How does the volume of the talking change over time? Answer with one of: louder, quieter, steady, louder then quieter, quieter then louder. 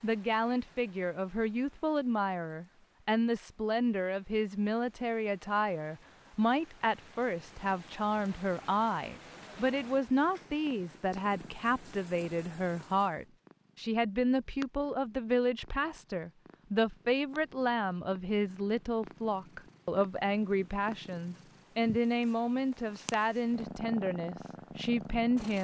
steady.